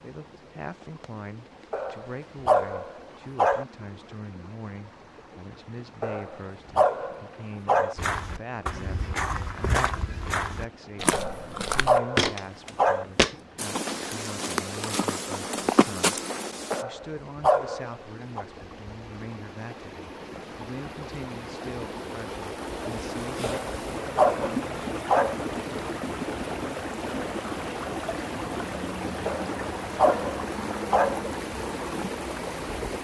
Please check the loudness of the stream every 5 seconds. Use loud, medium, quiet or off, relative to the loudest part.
quiet, quiet, quiet, quiet, loud, loud, loud.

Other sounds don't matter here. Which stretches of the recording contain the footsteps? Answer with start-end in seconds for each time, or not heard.
8.0-16.9.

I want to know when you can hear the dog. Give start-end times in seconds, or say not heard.
1.7-3.6, 6.0-8.0, 11.1-13.1, 16.7-18.4, 23.4-25.4, 29.2-31.2.